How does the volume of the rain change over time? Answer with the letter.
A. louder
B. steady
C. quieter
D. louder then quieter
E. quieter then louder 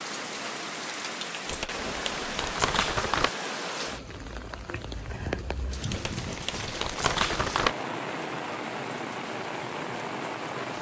B.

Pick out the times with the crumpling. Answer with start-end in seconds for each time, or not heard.
1.4-3.3, 5.9-7.8.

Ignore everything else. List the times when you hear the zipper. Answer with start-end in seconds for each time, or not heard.
not heard.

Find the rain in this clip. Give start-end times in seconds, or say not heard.
0.0-10.7.